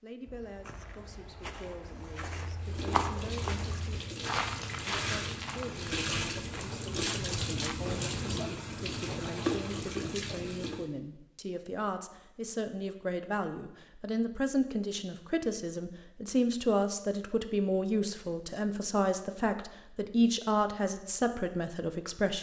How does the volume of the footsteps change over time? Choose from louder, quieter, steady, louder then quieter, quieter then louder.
louder then quieter.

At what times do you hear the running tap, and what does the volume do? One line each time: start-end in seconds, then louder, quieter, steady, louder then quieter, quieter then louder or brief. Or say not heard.
2.5-10.9 louder.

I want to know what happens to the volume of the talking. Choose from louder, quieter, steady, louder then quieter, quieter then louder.
louder.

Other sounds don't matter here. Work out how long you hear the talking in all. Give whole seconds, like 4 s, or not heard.
22 s.